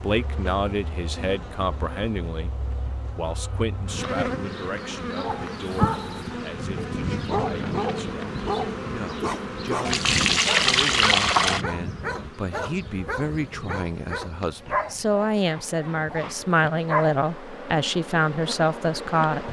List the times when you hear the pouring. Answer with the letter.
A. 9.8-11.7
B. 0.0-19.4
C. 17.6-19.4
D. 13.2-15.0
A.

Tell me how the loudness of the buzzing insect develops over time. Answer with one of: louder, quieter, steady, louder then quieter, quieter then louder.
louder then quieter.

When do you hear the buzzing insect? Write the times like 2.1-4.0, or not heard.
0.0-19.4.